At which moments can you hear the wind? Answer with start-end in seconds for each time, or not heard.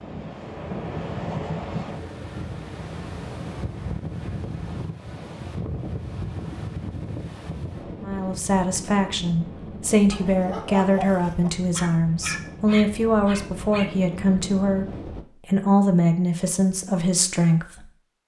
0.0-15.2.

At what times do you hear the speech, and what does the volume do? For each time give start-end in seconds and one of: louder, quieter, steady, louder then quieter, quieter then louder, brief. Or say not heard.
8.0-17.9 steady.